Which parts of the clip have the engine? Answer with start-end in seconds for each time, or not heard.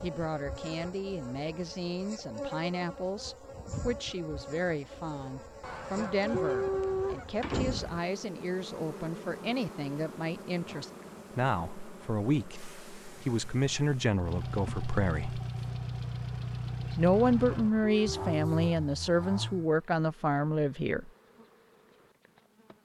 13.2-19.7.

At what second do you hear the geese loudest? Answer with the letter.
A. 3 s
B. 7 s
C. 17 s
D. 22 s
B.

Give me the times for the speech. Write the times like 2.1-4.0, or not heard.
0.0-15.4, 16.9-21.1.